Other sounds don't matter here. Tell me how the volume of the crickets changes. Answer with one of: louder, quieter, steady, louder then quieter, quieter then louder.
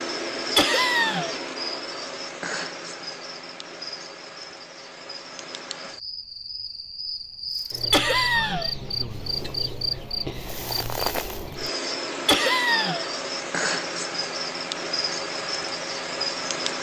quieter then louder.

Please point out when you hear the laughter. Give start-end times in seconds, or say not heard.
0.6-1.4, 7.9-8.7, 12.2-13.1.